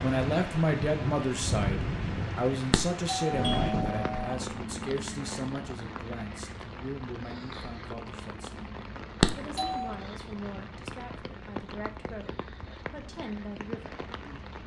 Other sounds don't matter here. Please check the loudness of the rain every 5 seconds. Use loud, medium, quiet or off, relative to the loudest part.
loud, medium, medium.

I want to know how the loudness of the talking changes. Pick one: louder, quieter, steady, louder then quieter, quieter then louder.
quieter.